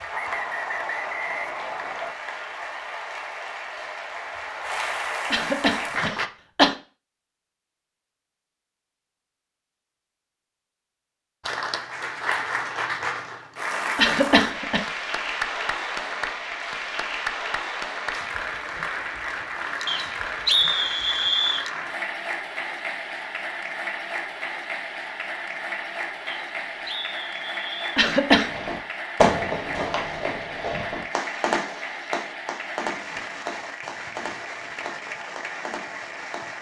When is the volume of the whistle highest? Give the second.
21 s.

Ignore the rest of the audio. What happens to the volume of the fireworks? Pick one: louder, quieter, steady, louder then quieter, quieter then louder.
quieter.